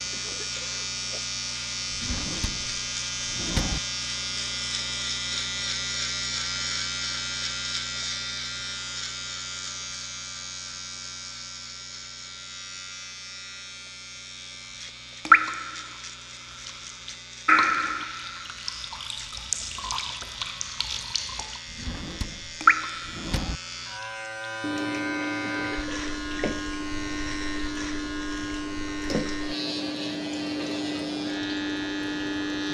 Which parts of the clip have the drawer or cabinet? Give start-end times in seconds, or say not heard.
1.9-3.8, 21.6-23.6.